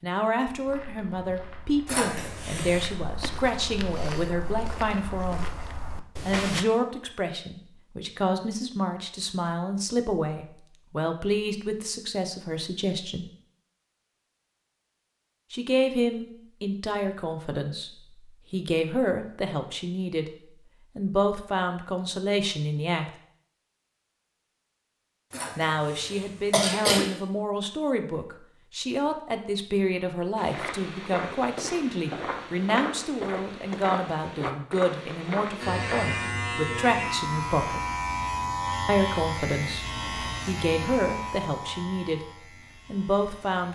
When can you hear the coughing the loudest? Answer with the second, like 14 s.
27 s.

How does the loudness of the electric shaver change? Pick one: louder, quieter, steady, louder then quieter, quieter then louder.
quieter.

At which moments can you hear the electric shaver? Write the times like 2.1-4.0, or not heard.
35.5-43.7.